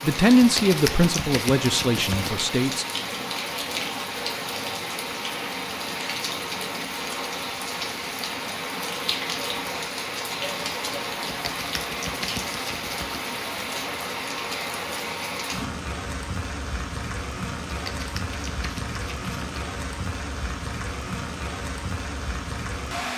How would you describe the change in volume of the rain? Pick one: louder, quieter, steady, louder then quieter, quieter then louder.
steady.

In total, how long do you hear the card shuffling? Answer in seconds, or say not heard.
6 s.